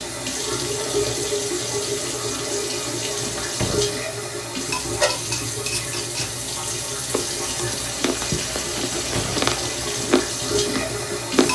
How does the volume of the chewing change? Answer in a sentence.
The volume of the chewing goes up, then down.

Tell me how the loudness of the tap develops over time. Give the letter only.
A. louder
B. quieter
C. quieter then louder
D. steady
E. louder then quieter
D.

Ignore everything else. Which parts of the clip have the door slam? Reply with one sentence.
You can hear the door slam from 3.4 to 4.0 s and from 8.9 to 9.5 s.